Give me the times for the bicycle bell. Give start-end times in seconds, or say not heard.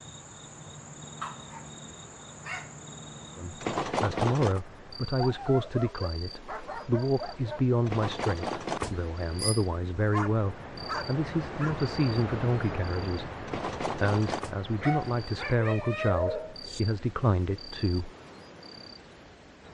3.6-4.6, 7.8-9.7, 13.4-14.5.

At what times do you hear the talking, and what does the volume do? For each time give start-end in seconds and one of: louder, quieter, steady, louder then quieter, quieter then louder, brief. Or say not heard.
3.4-18.1 steady.